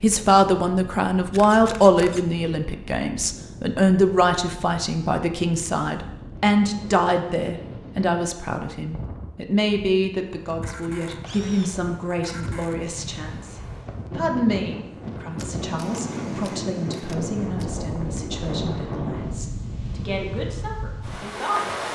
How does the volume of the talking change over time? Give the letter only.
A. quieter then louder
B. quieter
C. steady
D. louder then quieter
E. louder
B.